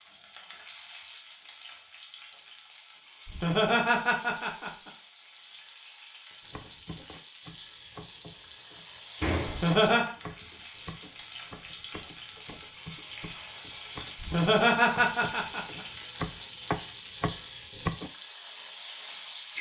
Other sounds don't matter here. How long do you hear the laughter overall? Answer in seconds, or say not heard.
4 s.